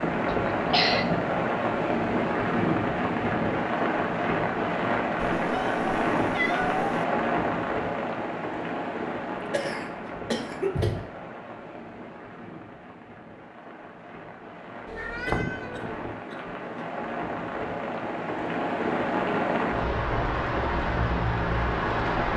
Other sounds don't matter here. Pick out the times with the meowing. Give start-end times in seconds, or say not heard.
5.2-7.0, 14.8-16.1.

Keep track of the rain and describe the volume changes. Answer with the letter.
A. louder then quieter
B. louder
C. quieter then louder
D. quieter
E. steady
C.